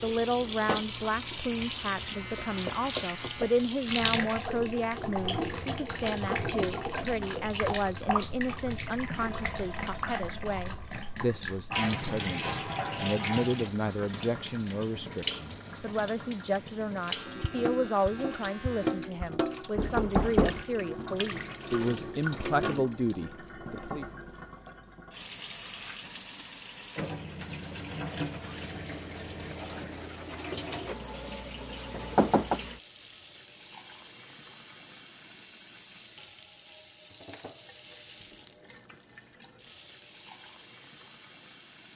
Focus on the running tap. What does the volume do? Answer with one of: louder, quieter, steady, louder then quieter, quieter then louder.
quieter.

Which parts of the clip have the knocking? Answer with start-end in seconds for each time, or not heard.
2.5-3.6, 19.8-20.6, 31.9-32.6.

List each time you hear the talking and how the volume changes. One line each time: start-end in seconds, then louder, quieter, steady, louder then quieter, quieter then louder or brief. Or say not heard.
0.0-24.1 steady.